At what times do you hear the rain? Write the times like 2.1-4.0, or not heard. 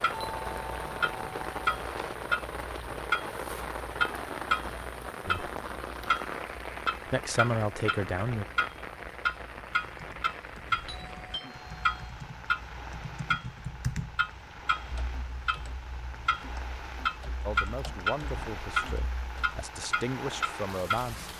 0.0-21.3.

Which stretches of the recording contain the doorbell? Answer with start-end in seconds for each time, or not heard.
0.1-2.1, 10.8-12.2.